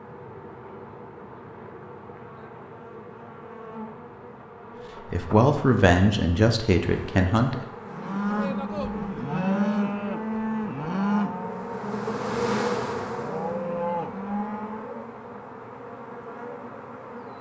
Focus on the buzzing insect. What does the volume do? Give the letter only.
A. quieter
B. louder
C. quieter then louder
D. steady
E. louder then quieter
E.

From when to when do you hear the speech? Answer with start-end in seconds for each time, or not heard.
5.0-7.7.